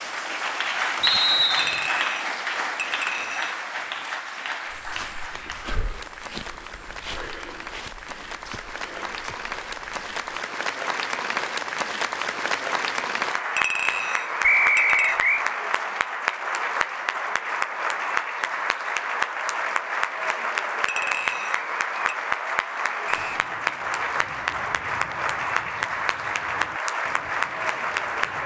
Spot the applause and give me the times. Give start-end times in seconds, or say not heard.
0.0-28.4.